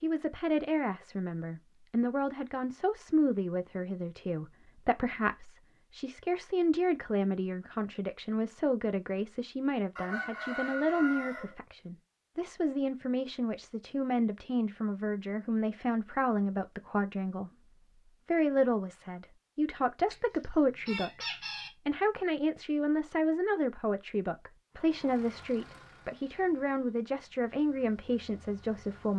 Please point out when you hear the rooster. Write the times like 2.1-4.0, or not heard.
9.9-11.6, 20.1-21.7.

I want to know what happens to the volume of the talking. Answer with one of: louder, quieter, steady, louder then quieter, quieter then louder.
steady.